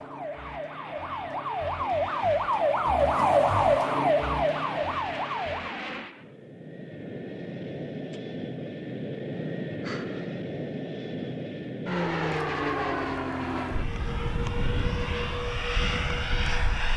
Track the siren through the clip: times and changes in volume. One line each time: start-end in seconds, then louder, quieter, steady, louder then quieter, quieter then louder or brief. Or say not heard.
0.0-5.8 louder then quieter.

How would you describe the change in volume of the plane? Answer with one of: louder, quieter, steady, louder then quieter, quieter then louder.
louder.